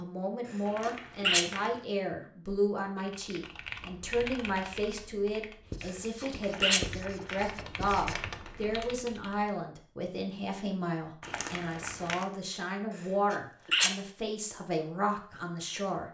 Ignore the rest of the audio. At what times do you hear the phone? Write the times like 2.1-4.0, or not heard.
not heard.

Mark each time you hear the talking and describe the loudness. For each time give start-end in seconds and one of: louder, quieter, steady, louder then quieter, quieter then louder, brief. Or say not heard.
0.0-16.1 steady.